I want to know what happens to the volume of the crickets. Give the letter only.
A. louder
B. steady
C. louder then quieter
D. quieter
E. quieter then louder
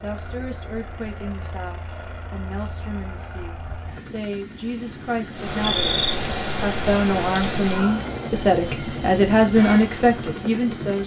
D.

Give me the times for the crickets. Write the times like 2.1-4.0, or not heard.
5.3-11.0.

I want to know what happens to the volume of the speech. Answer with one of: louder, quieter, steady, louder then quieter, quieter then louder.
louder.